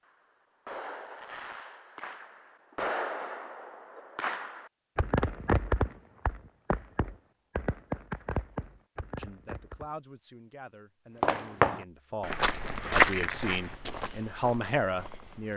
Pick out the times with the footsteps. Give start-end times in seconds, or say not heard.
11.2-15.5.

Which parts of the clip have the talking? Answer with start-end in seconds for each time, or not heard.
9.2-15.5.